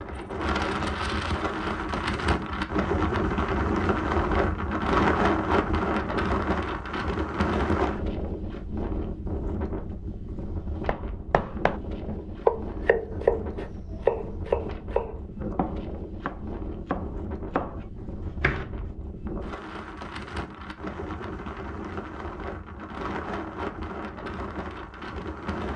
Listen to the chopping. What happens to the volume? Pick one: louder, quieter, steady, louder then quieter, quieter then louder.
quieter.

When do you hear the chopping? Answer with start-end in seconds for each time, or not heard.
10.8-18.9.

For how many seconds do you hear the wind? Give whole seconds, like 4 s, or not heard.
26 s.